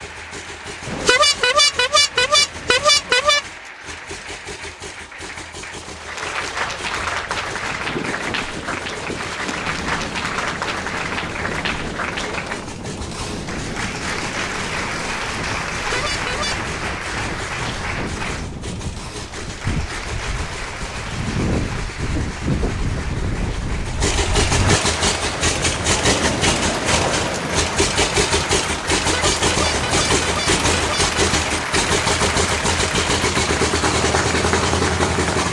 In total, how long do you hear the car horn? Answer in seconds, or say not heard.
6 s.